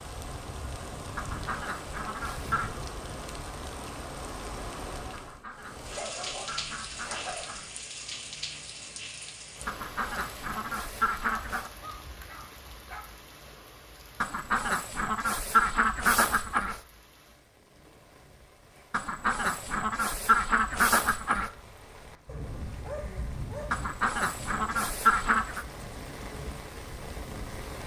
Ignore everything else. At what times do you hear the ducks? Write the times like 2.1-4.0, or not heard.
1.1-2.8, 5.1-7.7, 9.7-11.7, 14.2-16.8, 18.9-21.5, 23.7-25.6.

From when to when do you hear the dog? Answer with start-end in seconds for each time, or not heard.
6.0-7.5, 11.2-13.1, 22.2-23.9.